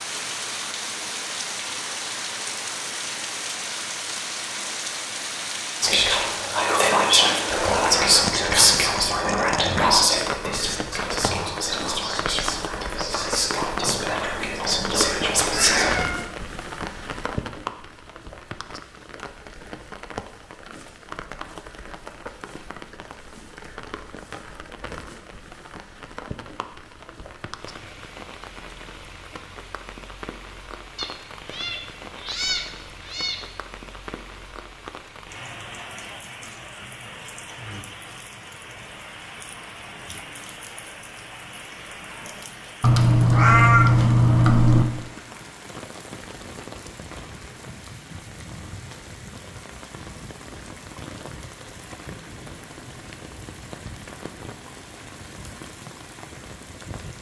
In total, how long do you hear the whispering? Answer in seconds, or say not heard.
10 s.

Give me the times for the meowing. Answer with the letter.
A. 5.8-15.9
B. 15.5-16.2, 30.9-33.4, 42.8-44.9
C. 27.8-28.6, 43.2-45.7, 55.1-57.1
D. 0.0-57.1
B.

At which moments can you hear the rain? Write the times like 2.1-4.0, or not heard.
0.0-57.1.